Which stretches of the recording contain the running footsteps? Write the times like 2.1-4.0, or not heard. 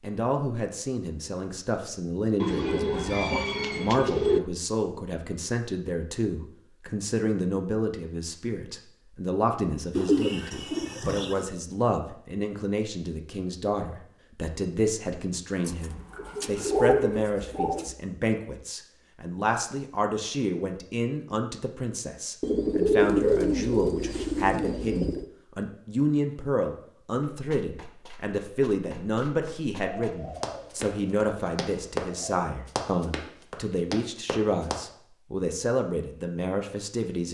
27.1-34.8.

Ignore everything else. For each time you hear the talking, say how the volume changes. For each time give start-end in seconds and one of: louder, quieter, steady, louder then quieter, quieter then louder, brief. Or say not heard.
0.0-37.3 steady.